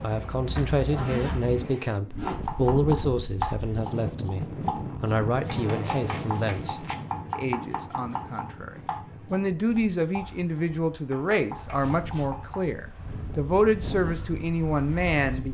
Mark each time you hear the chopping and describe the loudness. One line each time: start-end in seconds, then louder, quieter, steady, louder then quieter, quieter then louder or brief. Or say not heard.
2.2-12.7 quieter.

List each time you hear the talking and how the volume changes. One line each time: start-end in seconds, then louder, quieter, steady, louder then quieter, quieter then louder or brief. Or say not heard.
0.0-15.4 quieter then louder.